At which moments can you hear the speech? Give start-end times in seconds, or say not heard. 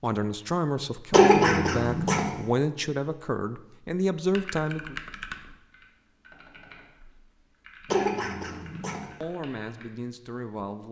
0.0-5.0, 9.2-10.8.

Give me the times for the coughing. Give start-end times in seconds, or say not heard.
1.1-2.3, 7.8-9.1.